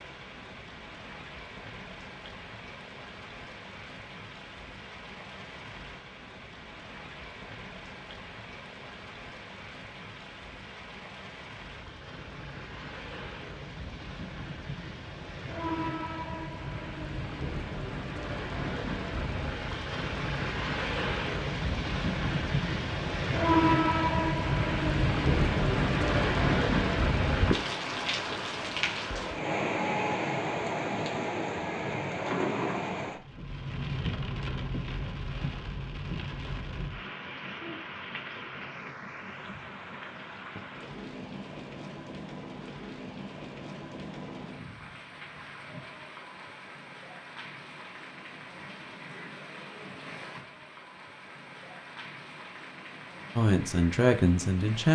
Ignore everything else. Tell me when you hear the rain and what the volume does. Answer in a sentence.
The rain can be heard from 0.0 to 54.9 s, getting louder then quieter.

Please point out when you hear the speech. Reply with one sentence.
The speech can be heard from 53.4 to 54.9 s.